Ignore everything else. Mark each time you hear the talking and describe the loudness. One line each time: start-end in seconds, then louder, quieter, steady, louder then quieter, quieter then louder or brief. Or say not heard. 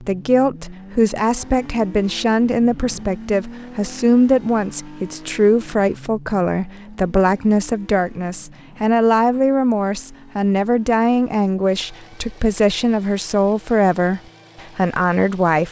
0.0-15.6 steady.